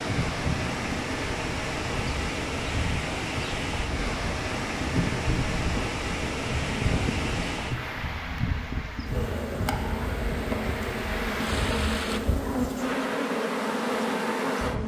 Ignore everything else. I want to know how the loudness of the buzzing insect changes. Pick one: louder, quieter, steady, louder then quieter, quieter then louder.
louder.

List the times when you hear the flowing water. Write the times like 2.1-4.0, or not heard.
0.0-12.2.